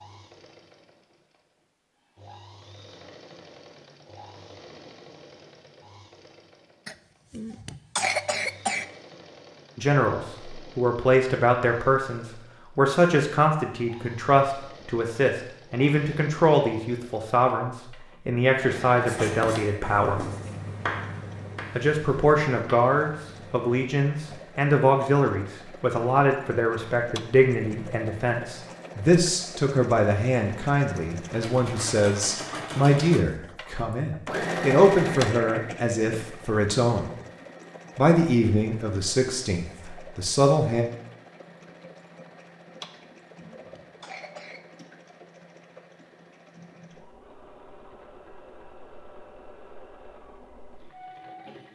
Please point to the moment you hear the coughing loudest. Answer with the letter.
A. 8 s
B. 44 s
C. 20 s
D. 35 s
A.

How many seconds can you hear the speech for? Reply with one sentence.
You can hear the speech for 29 seconds altogether.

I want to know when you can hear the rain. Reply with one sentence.
You can't hear the rain here.